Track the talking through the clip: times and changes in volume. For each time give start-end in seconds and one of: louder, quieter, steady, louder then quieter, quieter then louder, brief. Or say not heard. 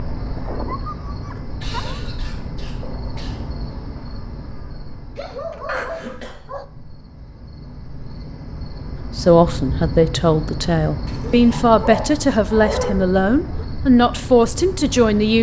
9.2-15.3 steady.